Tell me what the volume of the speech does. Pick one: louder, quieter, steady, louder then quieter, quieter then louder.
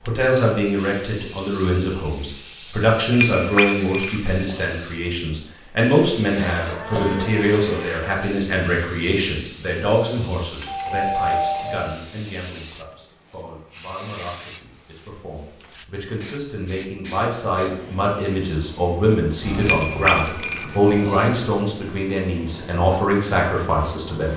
quieter then louder.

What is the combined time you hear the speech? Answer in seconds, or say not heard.
24 s.